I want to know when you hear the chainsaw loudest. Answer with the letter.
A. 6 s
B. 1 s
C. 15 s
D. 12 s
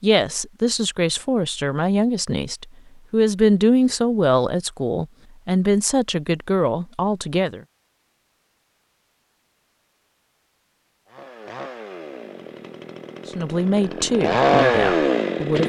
C.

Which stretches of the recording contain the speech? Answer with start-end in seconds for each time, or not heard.
0.0-7.6, 13.3-15.6.